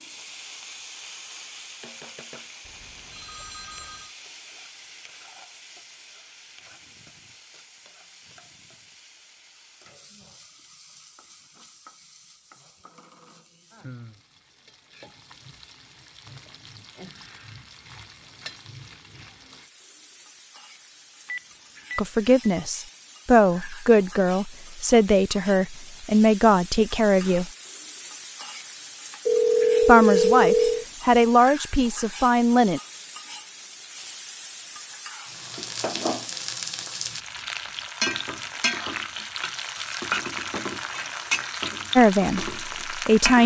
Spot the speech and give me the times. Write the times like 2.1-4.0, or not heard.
21.9-27.5, 29.8-32.8, 42.0-43.4.